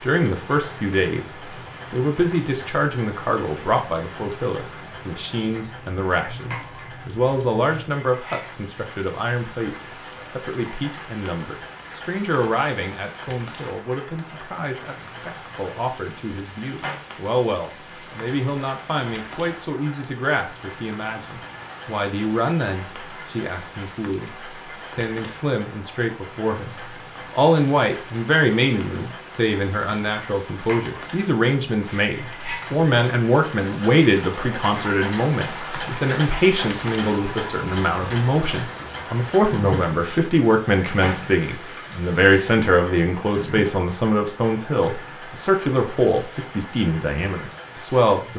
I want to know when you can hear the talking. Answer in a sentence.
The talking can be heard from 0.0 to 1.3 s, from 1.9 to 24.3 s and from 24.9 to 48.3 s.